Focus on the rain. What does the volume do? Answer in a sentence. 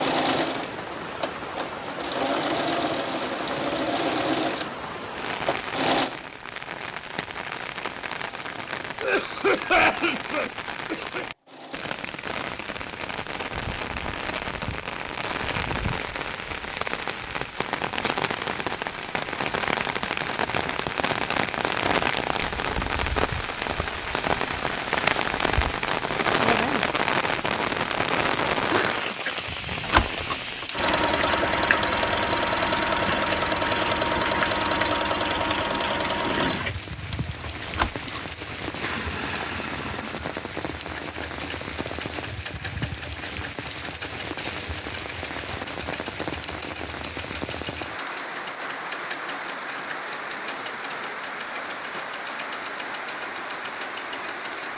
The loudness of the rain goes up, then down.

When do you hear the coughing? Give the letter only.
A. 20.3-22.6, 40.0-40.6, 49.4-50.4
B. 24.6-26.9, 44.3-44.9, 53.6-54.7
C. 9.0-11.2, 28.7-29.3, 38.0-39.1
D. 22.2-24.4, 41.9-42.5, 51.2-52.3
C.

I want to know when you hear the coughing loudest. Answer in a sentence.
The volume of the coughing peaks at 10 seconds.